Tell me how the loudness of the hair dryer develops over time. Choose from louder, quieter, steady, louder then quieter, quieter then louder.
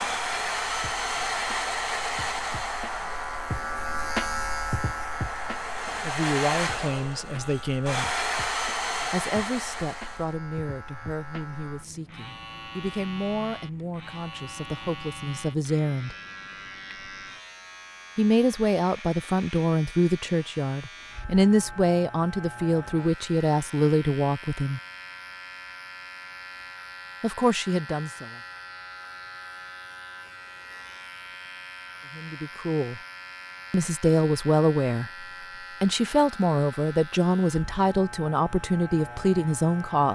quieter then louder.